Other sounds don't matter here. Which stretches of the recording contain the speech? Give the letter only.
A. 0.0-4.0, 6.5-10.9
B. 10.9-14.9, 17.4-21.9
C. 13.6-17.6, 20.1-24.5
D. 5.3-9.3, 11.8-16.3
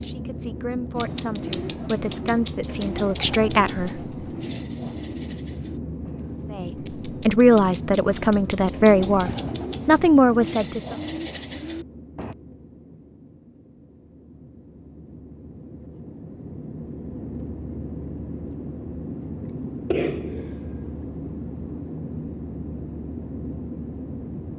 A.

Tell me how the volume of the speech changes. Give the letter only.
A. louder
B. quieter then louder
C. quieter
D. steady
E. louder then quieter
A.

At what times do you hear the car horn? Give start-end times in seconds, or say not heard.
not heard.